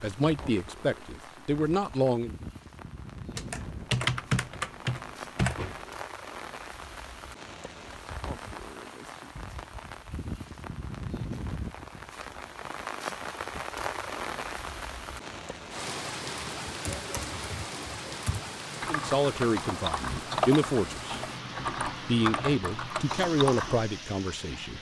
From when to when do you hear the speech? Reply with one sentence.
The speech can be heard from 0.0 to 2.4 s, from 18.9 to 21.2 s and from 22.1 to 24.7 s.